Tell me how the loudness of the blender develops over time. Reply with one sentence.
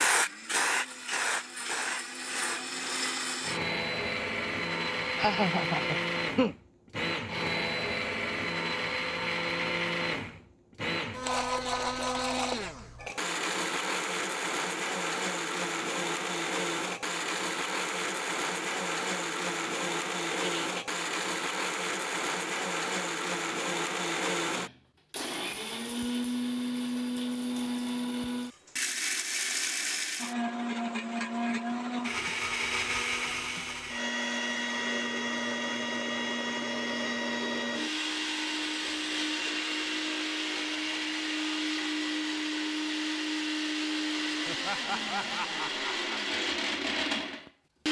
The volume of the blender stays about the same.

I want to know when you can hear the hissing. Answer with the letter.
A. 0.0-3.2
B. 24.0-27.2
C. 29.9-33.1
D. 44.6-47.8
A.